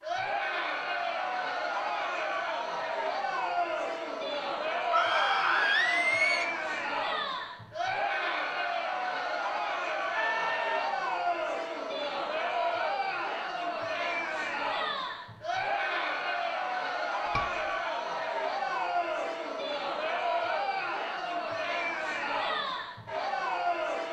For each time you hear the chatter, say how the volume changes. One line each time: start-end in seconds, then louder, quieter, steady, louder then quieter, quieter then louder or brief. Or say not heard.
0.0-24.0 steady.